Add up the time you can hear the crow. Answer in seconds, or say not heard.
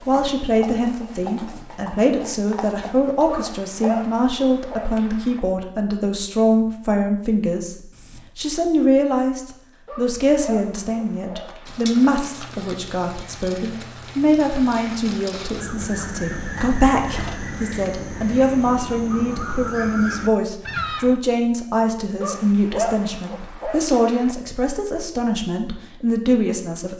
6 s.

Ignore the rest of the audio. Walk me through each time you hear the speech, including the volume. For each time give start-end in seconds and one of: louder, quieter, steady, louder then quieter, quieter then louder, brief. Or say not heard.
0.1-26.9 steady.